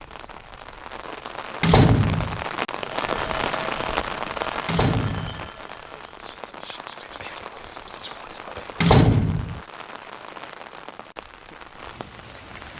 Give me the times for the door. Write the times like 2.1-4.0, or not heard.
1.6-2.5, 4.7-5.5, 8.8-9.6.